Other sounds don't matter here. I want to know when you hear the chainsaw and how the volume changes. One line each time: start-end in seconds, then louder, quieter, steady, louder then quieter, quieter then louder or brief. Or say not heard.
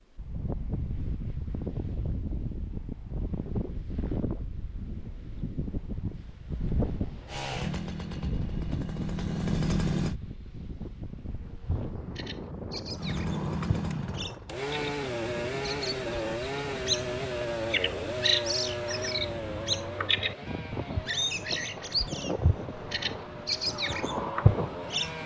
7.2-10.2 brief
12.9-25.2 quieter.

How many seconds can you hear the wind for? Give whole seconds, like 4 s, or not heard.
25 s.